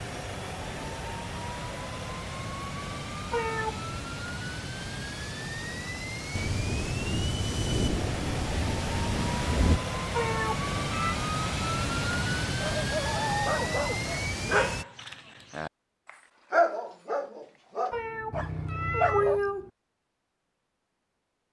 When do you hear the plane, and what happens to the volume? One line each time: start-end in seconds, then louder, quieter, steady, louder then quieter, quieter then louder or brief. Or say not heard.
0.0-14.8 louder.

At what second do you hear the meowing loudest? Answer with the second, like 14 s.
19 s.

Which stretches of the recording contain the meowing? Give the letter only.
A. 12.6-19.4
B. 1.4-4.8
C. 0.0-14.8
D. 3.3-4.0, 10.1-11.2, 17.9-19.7
D.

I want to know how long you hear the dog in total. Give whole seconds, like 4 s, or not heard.
7 s.